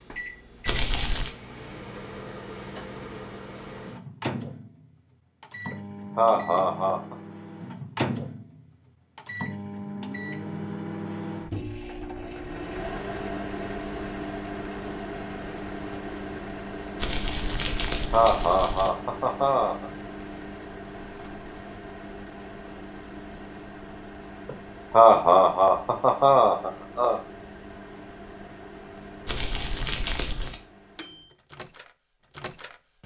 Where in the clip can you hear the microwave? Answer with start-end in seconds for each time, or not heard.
0.0-33.0.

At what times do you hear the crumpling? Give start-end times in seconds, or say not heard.
0.7-1.3, 17.0-18.9, 29.2-30.6.